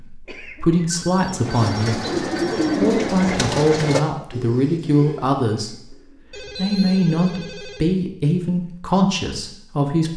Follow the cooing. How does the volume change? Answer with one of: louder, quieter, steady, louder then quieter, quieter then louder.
quieter.